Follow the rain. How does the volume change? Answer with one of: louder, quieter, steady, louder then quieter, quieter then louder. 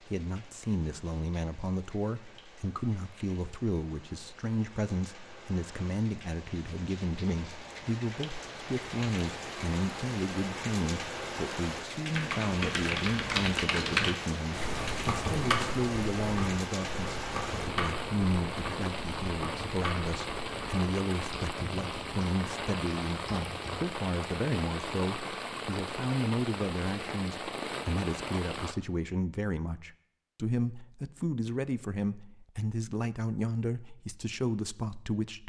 louder.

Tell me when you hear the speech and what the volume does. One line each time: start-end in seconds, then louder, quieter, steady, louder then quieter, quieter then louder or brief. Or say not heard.
0.0-35.4 steady.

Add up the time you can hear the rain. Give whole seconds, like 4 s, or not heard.
29 s.